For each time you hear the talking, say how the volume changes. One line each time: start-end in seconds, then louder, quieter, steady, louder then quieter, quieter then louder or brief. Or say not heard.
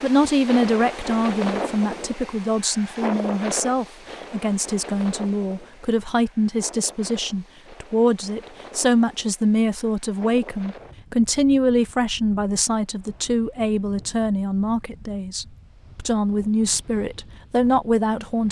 0.0-18.4 steady.